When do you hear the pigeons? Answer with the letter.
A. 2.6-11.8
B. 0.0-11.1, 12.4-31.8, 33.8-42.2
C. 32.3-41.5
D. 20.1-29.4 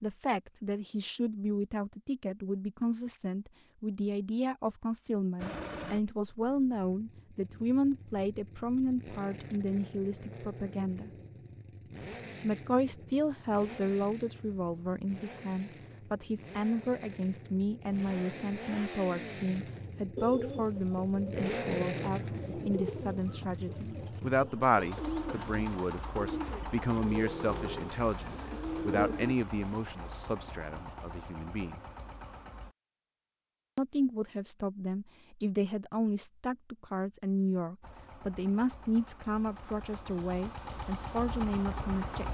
D.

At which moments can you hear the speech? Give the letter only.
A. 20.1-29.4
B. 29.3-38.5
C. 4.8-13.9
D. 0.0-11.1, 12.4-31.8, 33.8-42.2
D.